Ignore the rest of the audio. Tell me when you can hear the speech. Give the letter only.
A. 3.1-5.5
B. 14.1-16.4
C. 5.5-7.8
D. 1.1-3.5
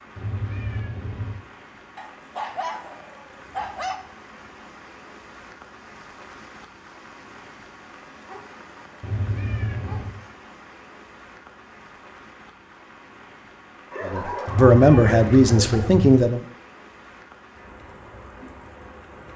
B.